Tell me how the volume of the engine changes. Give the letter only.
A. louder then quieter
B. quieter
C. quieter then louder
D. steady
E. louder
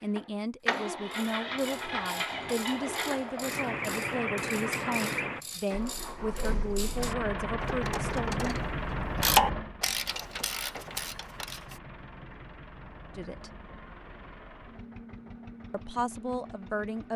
B.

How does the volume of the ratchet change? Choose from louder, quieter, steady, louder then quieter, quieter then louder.
louder then quieter.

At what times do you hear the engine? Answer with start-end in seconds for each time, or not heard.
0.0-17.1.